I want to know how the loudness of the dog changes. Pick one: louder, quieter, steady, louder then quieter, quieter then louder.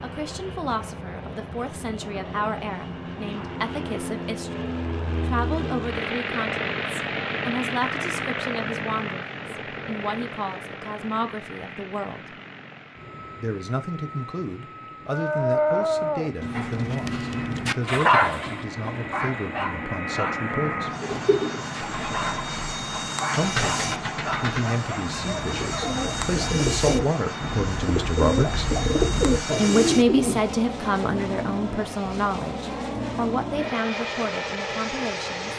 quieter.